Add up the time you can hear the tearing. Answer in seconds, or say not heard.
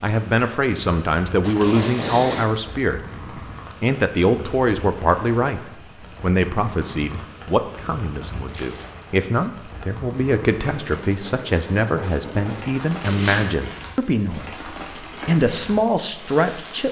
2 s.